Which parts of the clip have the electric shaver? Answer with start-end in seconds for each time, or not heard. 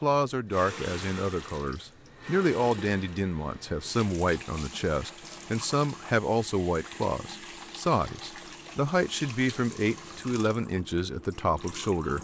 not heard.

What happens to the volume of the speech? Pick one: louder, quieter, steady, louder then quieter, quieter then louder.
steady.